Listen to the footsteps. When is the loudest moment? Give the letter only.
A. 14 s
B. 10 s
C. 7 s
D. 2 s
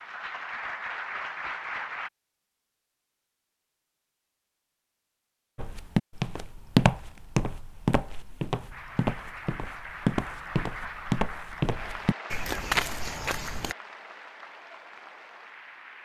C.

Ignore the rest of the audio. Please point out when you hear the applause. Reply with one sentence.
You can hear the applause from 0.0 to 2.1 s and from 8.7 to 15.9 s.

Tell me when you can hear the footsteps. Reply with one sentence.
The footsteps can be heard from 5.5 to 13.8 s.